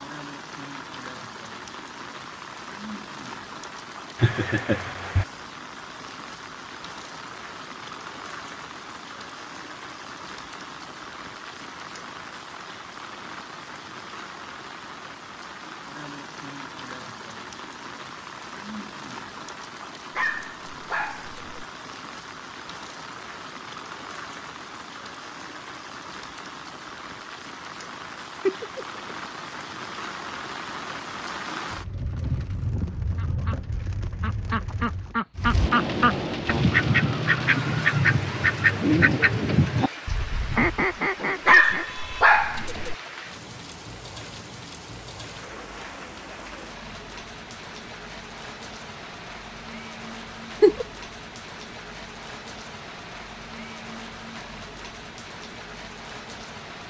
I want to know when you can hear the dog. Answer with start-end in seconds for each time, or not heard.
20.1-21.6, 41.5-43.0.